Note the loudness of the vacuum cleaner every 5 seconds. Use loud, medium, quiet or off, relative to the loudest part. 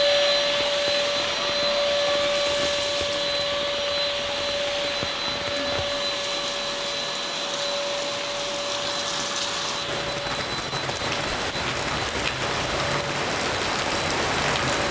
loud, medium, medium.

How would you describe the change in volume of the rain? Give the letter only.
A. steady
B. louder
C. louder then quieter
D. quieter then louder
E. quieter
B.